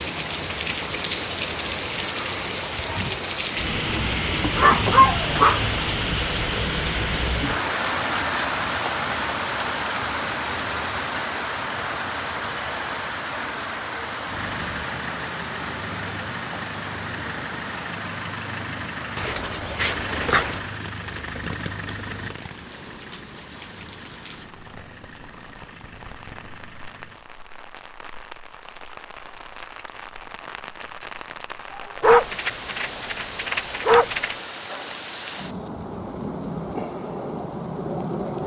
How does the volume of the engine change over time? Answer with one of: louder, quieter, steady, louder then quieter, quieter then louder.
quieter.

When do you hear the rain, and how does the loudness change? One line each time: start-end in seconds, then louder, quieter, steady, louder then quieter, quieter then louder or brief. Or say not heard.
0.0-38.4 quieter then louder.